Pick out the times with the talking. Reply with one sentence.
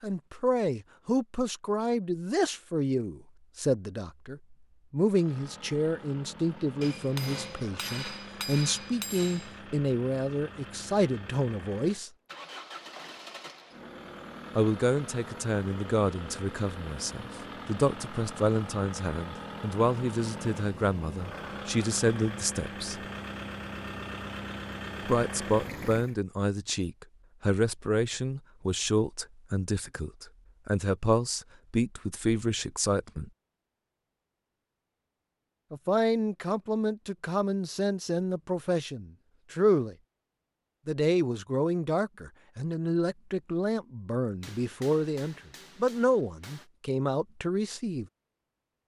You can hear the talking from 0.0 to 12.1 s, from 14.6 to 23.0 s, from 25.1 to 33.3 s, from 35.7 to 40.0 s and from 40.9 to 48.0 s.